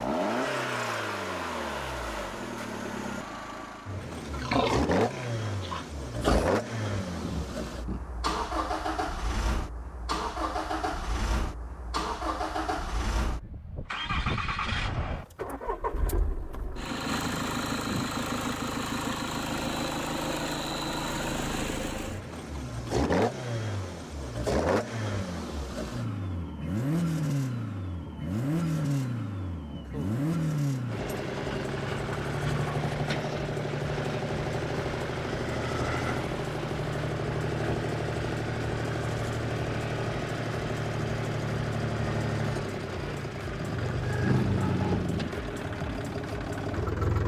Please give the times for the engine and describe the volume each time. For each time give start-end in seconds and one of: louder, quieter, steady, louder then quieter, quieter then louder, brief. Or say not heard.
0.0-47.2 steady.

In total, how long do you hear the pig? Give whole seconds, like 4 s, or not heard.
2 s.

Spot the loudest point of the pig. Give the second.
5 s.